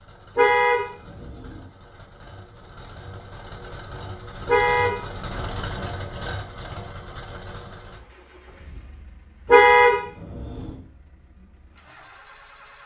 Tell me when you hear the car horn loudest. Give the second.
10 s.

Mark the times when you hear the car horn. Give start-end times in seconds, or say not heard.
0.3-1.6, 4.5-5.7, 9.4-10.7.